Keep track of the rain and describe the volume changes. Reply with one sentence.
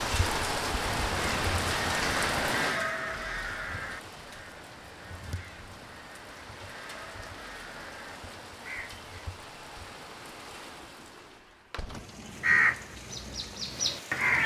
The loudness of the rain goes down.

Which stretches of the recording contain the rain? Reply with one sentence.
You can hear the rain from 0.0 to 14.4 s.